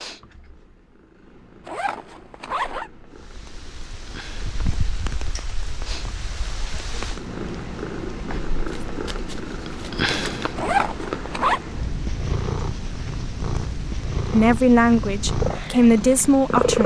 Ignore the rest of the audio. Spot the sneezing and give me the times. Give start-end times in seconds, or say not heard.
not heard.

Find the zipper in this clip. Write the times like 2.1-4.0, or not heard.
1.6-2.9, 10.6-11.6.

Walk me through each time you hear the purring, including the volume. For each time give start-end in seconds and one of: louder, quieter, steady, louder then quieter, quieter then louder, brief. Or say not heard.
0.0-16.8 louder.